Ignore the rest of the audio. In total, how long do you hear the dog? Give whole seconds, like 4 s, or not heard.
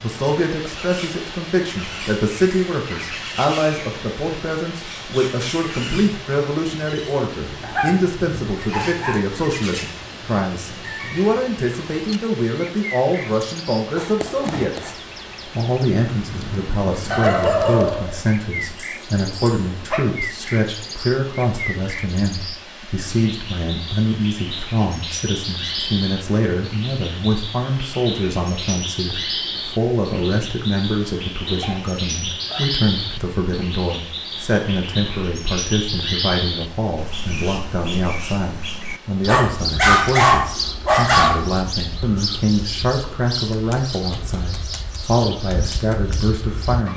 8 s.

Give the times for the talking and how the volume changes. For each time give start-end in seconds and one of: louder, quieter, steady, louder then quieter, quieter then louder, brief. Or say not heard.
0.0-46.9 steady.